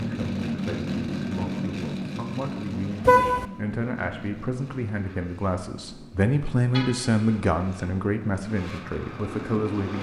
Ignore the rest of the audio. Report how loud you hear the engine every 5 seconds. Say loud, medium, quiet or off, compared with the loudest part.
loud, medium.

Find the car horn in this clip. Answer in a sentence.
You can hear the car horn from 3.0 to 3.5 s and from 6.7 to 7.2 s.